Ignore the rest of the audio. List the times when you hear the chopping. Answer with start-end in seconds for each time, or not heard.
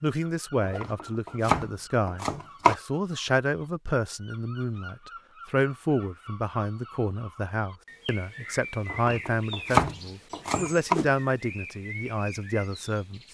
0.6-2.8, 8.9-10.9.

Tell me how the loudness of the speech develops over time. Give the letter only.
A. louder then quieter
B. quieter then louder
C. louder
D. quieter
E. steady
E.